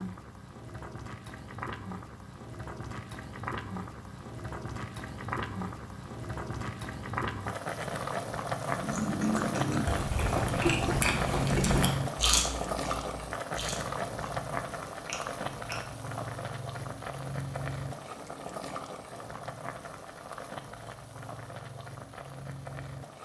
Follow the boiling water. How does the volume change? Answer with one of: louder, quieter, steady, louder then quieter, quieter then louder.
louder then quieter.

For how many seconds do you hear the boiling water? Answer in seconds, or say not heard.
23 s.